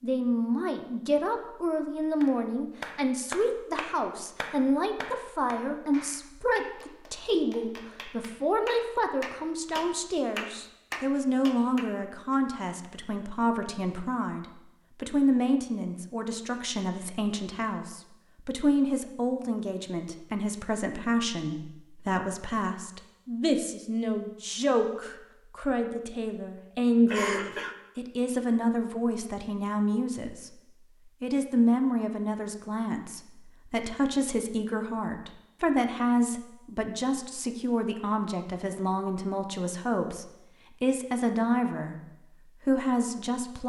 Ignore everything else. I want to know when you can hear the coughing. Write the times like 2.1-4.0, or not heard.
27.1-27.8.